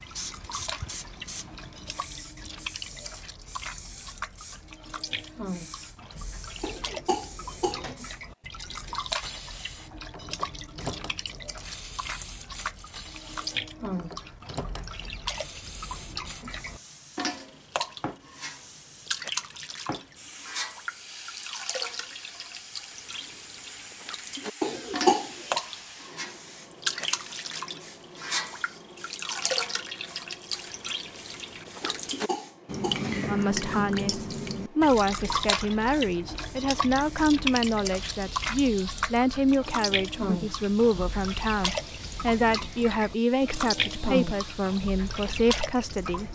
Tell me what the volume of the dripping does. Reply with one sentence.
The loudness of the dripping goes up.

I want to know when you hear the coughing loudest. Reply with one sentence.
The loudest moment of the coughing is at 25 seconds.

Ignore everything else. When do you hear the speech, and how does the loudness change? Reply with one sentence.
You can hear the speech from 33.2 to 46.3 s, at a steady volume.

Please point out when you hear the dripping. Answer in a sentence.
The dripping can be heard from 0.0 to 46.3 s.